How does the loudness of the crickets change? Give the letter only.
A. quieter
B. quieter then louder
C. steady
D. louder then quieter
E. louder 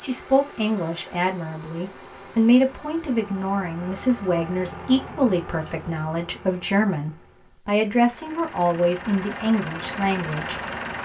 A.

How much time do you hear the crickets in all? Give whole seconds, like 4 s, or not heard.
8 s.